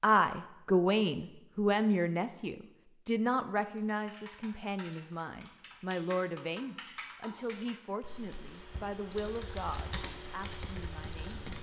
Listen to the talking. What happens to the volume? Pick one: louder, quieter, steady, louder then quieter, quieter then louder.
quieter.